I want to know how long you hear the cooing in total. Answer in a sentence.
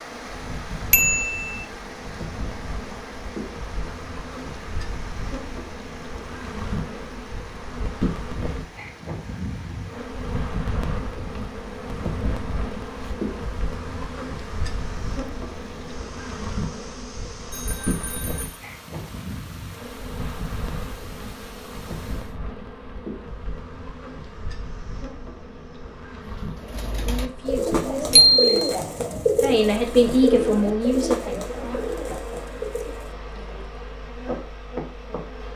You can hear the cooing for 7 seconds altogether.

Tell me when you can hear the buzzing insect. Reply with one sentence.
You can hear the buzzing insect from 0.0 to 35.5 s.